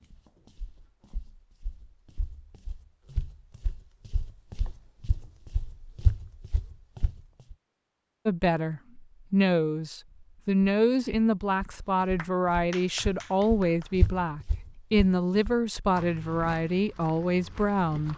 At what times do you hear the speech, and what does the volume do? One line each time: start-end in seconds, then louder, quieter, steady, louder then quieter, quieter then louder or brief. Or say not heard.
8.2-18.1 steady.